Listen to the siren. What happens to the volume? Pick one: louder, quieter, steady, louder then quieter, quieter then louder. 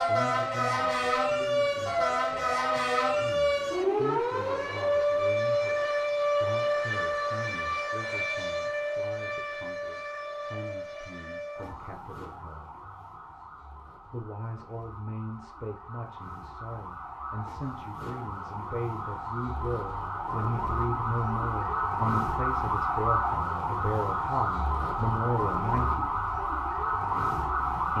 quieter then louder.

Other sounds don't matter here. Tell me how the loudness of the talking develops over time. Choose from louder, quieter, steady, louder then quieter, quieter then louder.
louder.